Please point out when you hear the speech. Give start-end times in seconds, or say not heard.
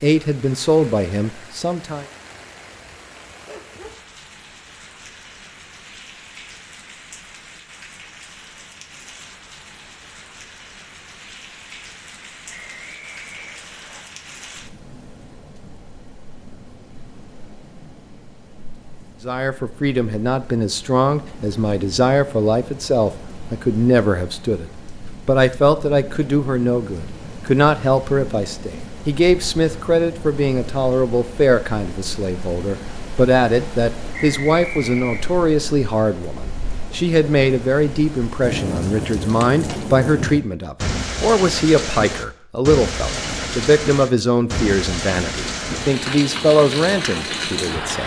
0.0-2.0, 19.2-48.0.